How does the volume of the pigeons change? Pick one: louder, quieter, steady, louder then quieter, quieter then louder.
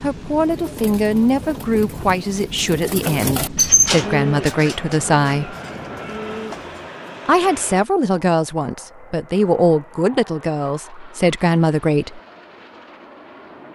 louder then quieter.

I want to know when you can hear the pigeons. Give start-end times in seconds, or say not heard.
0.3-6.8.